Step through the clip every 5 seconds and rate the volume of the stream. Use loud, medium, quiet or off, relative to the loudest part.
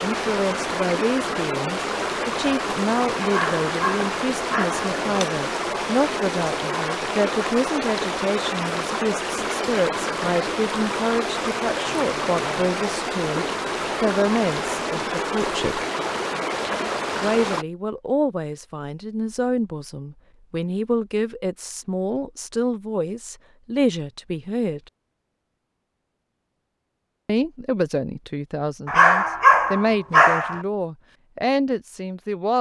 loud, loud, loud, loud, off, off, off.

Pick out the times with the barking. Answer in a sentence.
The barking can be heard from 3.2 to 4.8 s and from 28.9 to 30.6 s.